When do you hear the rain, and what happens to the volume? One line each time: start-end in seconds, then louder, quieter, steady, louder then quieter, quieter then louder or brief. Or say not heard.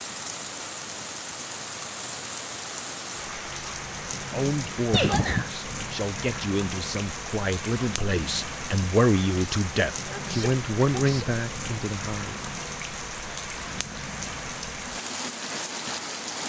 0.0-16.4 steady.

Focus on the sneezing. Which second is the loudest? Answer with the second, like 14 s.
5 s.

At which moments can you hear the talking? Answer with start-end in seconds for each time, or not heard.
4.3-12.4.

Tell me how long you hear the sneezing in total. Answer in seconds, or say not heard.
2 s.